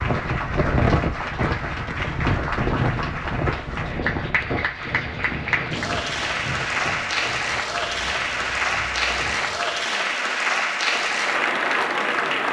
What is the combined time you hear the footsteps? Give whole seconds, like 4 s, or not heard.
not heard.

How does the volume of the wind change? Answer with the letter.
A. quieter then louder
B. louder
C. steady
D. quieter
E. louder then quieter
D.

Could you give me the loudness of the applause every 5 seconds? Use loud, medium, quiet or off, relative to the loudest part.
medium, loud, loud.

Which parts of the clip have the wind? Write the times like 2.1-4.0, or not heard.
0.0-9.8.